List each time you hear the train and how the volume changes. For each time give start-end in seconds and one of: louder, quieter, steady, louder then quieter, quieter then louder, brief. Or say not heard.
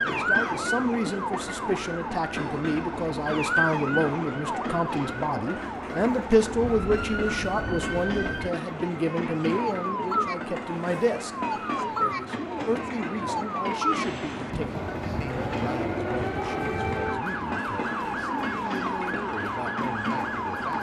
0.0-20.7 steady.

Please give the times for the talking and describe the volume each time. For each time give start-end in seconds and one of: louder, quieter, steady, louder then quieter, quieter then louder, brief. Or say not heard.
0.0-20.7 quieter.